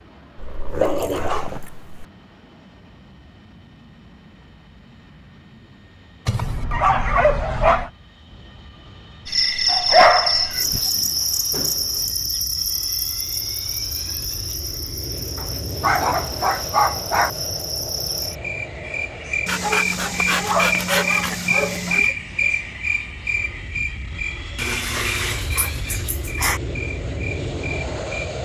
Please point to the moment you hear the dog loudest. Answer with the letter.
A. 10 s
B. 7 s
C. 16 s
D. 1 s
A.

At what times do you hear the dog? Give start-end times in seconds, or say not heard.
0.3-2.0, 6.2-7.9, 9.7-10.8, 15.3-17.3, 19.4-22.1, 24.6-26.6.